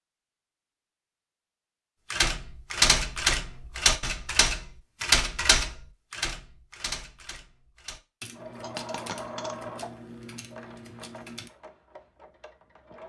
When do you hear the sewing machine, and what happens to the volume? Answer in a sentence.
The sewing machine can be heard from 8.3 to 13.0 s, getting quieter.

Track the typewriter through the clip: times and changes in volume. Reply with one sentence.
The typewriter can be heard from 2.1 to 11.5 s, getting quieter.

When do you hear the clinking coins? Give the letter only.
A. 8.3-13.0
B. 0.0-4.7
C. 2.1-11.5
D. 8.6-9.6
D.